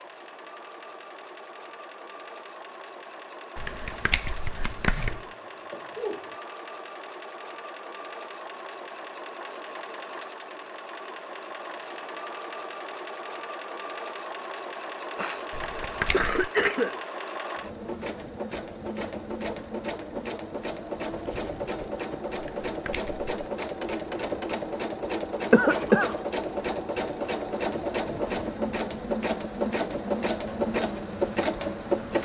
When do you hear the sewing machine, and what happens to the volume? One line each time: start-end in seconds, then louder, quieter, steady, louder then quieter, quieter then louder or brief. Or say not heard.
0.0-32.2 louder.